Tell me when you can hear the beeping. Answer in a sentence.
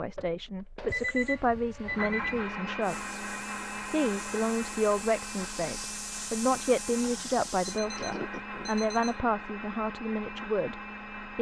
You can hear the beeping from 0.9 to 2.5 s and from 7.4 to 9.1 s.